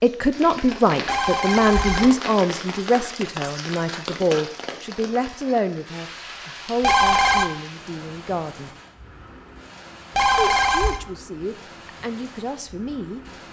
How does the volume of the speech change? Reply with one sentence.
The loudness of the speech goes down.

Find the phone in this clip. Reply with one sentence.
The phone can be heard from 1.1 to 2.3 s, from 6.8 to 7.5 s and from 10.2 to 11.0 s.